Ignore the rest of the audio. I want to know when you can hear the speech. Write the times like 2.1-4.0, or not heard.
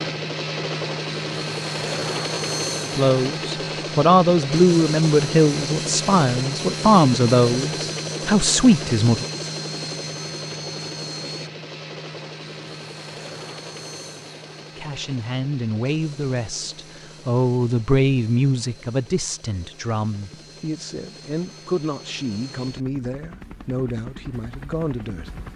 3.0-9.2, 14.8-25.5.